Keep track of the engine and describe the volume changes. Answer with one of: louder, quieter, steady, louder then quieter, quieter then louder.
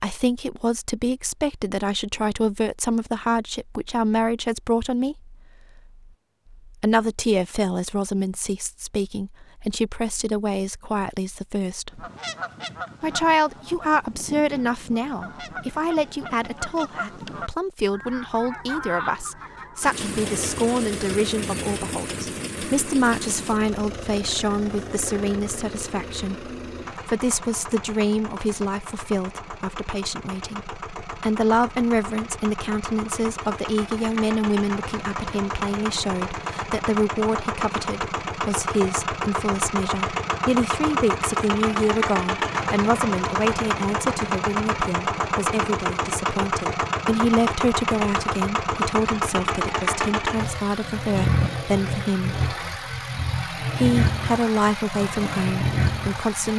louder.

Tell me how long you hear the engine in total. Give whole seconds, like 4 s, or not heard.
37 s.